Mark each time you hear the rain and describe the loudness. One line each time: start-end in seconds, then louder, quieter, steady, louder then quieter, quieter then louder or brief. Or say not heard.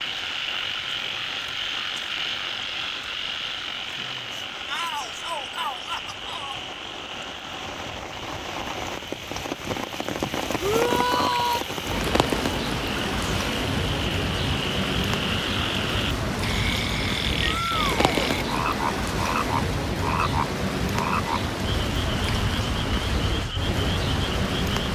0.0-24.9 louder.